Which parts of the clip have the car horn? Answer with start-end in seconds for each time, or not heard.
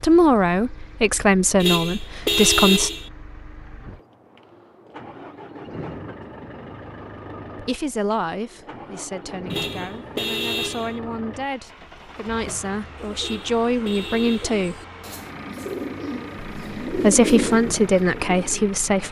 1.6-3.1, 9.5-11.0, 13.2-14.6.